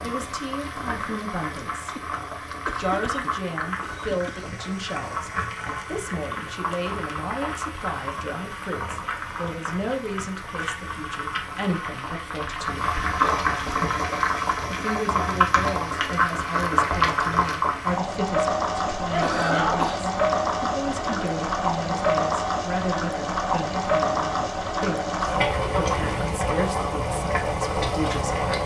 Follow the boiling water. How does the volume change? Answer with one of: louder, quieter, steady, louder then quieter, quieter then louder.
louder.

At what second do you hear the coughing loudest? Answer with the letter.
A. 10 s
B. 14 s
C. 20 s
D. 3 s
C.